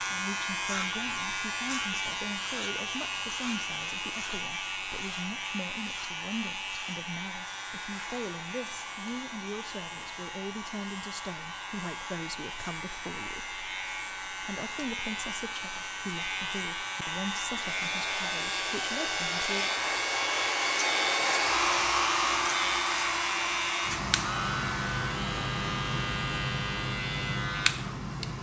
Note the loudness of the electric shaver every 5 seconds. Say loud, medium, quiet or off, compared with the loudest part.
loud, medium, medium, loud, loud, loud.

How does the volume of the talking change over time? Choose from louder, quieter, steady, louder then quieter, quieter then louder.
steady.